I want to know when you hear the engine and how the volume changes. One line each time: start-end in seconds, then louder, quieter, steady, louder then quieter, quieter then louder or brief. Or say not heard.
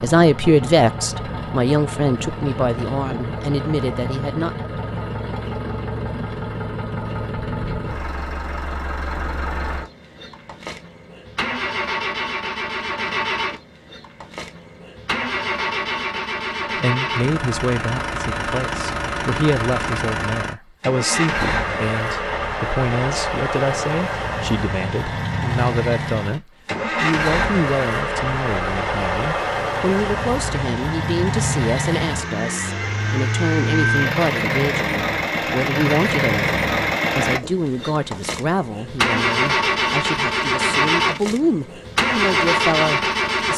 0.0-43.5 louder.